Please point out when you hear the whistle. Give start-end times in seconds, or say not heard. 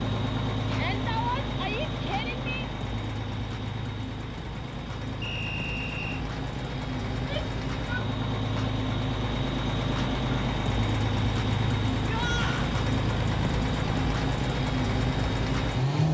5.2-6.2.